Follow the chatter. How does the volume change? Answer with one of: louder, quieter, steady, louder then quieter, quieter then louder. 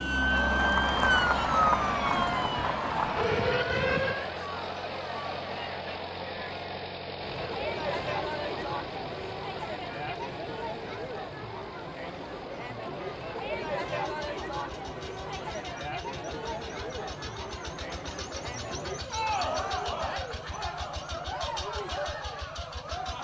steady.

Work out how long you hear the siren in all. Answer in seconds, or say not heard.
4 s.